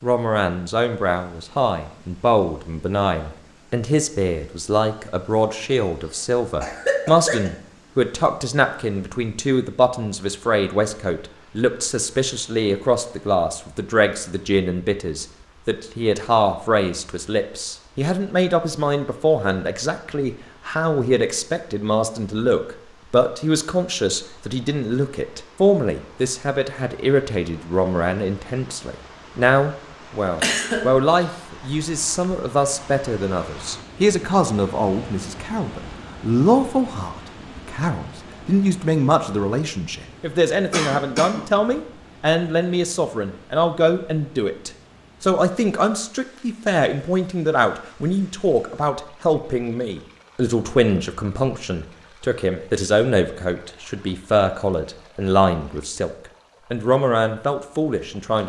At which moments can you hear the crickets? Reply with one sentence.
You can't hear the crickets here.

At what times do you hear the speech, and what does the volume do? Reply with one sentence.
The speech can be heard from 0.0 to 56.1 s, at a steady volume; and briefly from 56.7 to 58.4 s.